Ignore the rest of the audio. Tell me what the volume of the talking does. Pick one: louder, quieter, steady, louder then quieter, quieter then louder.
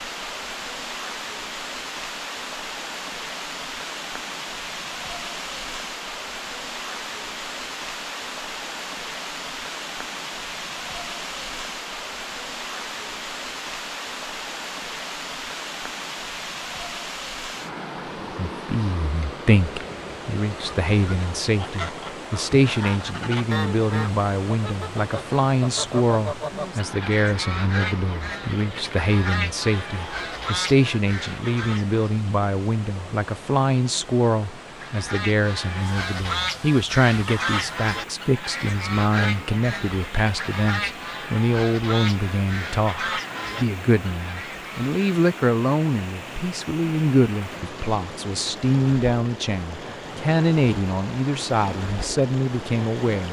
steady.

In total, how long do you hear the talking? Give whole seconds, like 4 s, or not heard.
35 s.